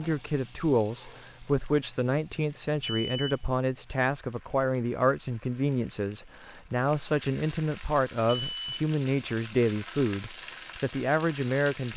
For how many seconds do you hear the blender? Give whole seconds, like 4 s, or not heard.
not heard.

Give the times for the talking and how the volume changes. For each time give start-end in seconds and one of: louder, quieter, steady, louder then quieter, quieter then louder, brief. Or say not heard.
0.0-11.9 steady.